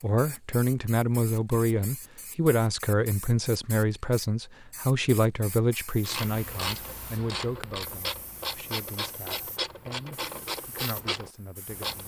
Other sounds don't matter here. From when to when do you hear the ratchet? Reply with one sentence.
You can hear the ratchet from 6.0 to 12.0 s.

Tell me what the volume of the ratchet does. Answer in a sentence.
The volume of the ratchet stays about the same.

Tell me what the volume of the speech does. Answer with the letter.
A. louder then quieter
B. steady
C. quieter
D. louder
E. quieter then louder
C.